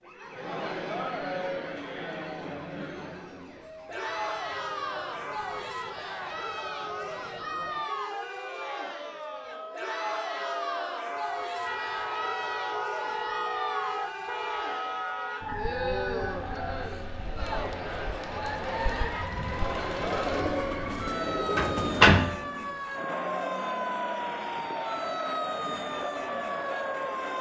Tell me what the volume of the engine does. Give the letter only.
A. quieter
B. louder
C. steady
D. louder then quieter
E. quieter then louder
B.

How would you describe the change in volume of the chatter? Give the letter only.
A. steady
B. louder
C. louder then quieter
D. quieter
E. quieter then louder
A.